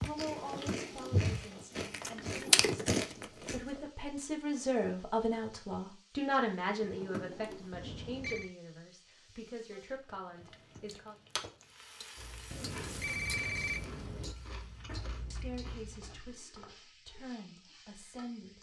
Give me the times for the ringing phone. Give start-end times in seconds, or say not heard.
1.9-2.6, 7.7-8.5, 12.5-14.3.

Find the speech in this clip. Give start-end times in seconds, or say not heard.
0.0-11.2, 15.3-18.5.